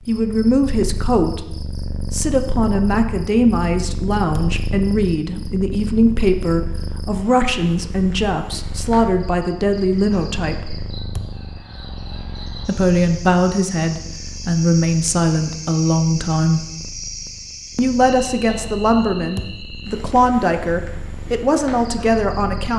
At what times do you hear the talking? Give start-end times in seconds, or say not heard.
0.1-10.8, 12.7-16.6, 17.8-22.7.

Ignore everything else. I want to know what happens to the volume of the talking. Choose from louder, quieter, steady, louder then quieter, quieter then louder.
steady.